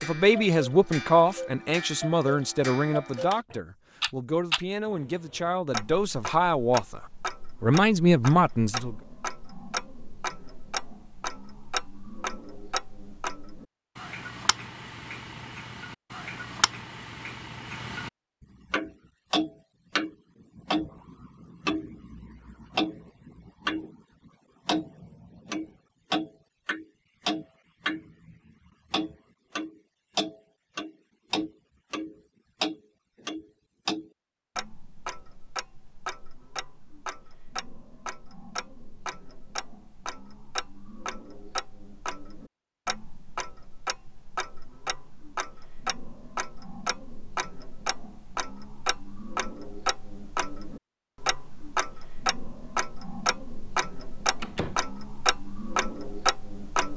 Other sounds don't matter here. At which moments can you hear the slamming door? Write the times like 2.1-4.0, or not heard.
54.4-54.9.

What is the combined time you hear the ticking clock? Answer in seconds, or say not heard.
57 s.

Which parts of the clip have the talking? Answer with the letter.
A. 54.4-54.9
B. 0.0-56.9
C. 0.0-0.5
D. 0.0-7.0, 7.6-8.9
D.